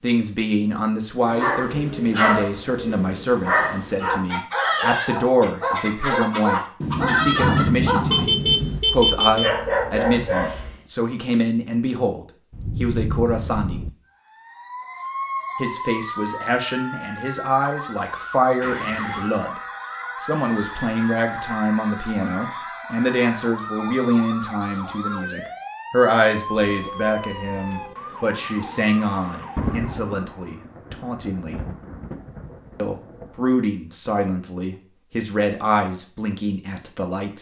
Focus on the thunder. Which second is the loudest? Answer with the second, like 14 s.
8 s.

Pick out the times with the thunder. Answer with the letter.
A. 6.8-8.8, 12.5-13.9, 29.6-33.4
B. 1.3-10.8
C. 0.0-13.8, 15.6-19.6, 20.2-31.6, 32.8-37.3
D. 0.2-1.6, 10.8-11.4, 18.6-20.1
A.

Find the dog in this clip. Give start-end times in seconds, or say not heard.
1.3-10.8.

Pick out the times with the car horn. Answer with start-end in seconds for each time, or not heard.
8.1-9.5, 18.6-19.3, 26.5-27.9.